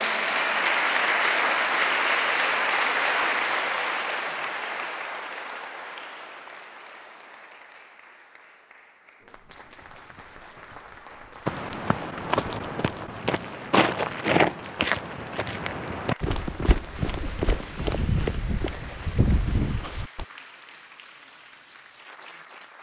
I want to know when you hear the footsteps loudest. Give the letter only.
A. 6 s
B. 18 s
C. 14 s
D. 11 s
C.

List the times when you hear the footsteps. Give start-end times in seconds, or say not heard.
11.4-20.2.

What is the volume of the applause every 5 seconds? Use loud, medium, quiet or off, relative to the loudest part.
loud, quiet, quiet, quiet, quiet.